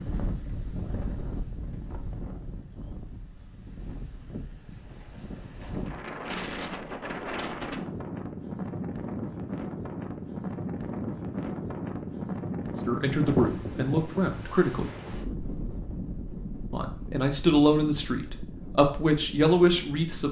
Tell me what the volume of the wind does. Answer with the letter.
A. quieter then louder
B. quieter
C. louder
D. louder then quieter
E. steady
D.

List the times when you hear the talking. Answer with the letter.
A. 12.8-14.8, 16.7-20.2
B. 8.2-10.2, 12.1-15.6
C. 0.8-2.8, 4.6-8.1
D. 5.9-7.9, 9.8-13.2
A.